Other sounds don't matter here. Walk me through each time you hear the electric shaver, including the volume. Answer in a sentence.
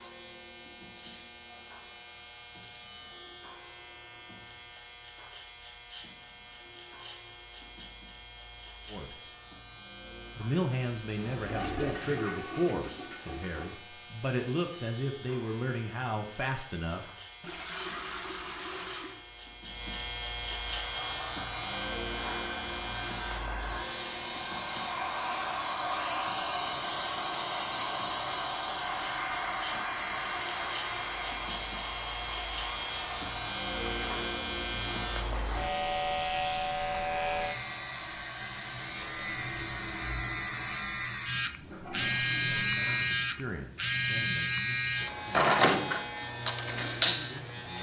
The electric shaver can be heard from 0.0 to 47.7 s, getting louder.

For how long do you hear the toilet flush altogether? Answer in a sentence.
The toilet flush can be heard for 6 seconds in total.